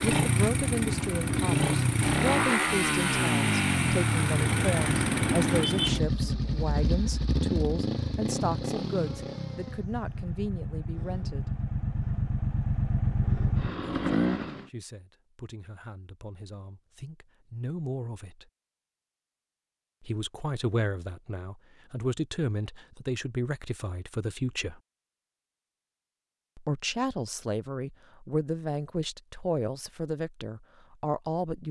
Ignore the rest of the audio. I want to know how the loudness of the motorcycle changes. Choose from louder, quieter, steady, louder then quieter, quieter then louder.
quieter then louder.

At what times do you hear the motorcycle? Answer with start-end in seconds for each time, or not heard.
0.0-14.7.